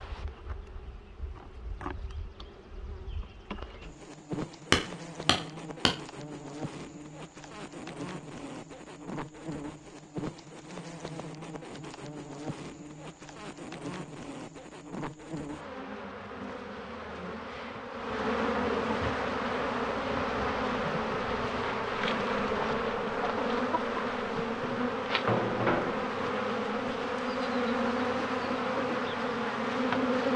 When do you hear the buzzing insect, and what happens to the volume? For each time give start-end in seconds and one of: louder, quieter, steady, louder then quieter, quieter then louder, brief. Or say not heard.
0.0-30.3 louder.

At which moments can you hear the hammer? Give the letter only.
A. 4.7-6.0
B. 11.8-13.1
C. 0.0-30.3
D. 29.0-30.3
A.